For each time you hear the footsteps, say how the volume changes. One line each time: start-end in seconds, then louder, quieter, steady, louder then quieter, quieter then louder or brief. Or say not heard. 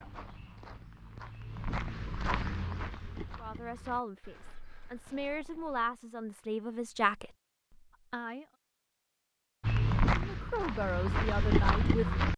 0.0-5.9 louder then quieter
9.6-12.3 brief.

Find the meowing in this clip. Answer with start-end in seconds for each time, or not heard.
not heard.